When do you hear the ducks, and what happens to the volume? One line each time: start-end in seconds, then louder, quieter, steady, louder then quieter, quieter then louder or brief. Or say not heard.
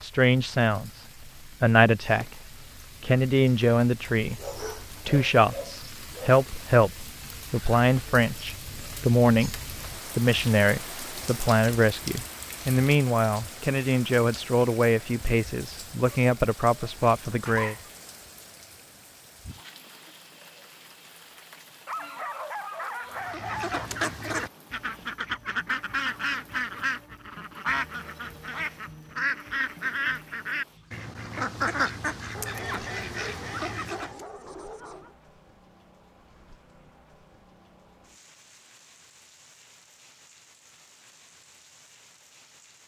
23.1-34.2 steady.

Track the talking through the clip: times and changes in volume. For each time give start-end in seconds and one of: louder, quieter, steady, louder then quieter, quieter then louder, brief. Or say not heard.
0.0-2.4 brief
3.0-17.8 steady.